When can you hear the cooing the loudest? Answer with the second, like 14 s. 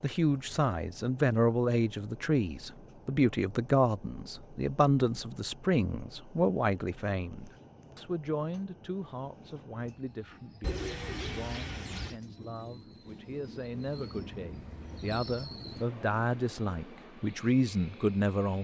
11 s.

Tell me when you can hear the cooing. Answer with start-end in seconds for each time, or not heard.
10.6-12.2.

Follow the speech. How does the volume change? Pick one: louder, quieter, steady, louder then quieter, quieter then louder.
quieter then louder.